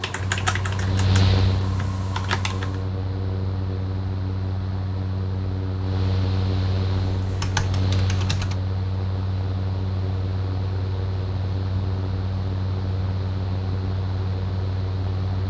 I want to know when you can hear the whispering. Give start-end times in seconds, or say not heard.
not heard.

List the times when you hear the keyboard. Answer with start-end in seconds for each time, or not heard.
0.0-2.8, 7.0-8.6.